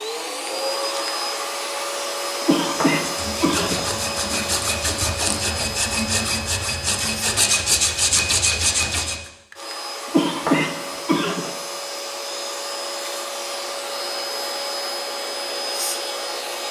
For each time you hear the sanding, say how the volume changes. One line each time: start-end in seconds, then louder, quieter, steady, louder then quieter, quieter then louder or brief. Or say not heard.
3.0-9.2 louder.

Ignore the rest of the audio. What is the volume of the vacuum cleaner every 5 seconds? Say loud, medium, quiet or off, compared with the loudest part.
loud, medium, loud, loud.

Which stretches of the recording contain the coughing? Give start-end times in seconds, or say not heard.
2.4-3.9, 10.1-11.5.